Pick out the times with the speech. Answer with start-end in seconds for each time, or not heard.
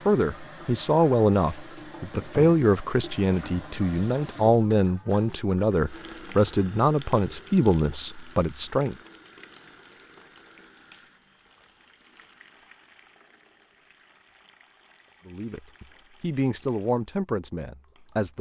0.1-8.9, 15.2-18.3.